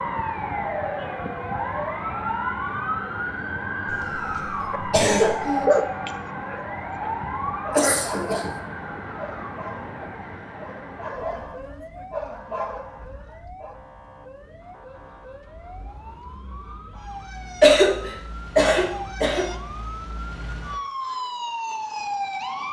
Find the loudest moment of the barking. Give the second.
6 s.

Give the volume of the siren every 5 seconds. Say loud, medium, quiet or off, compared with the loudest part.
loud, loud, quiet, medium, loud.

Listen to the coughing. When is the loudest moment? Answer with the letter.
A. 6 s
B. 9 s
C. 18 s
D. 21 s
C.